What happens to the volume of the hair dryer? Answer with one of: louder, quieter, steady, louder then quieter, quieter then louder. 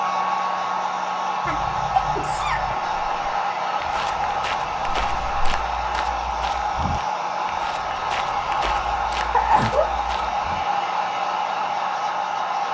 steady.